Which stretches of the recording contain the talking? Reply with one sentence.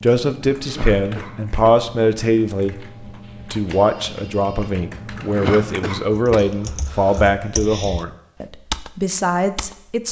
You can hear the talking from 0.0 to 10.0 s.